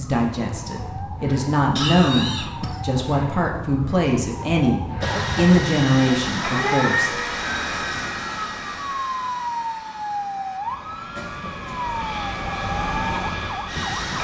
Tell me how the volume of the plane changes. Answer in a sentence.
The volume of the plane goes down, then up.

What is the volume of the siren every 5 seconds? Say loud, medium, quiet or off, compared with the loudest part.
medium, loud, loud.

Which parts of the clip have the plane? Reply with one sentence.
You can hear the plane from 5.0 to 14.1 s.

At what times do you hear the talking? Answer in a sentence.
You can hear the talking from 0.0 to 7.2 s.